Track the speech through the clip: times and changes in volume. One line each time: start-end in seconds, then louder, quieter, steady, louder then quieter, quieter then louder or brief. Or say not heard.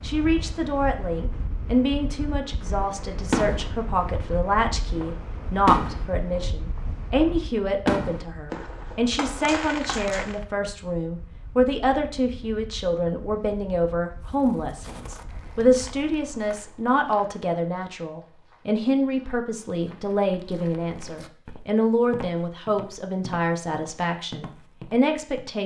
0.0-25.6 steady.